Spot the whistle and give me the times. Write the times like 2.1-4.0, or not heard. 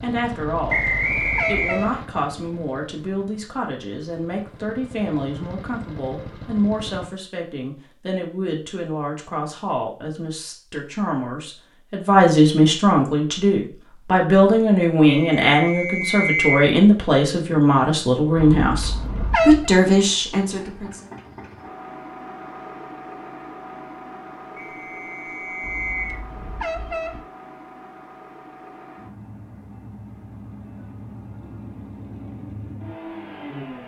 0.7-2.0, 15.1-16.8, 24.6-26.2.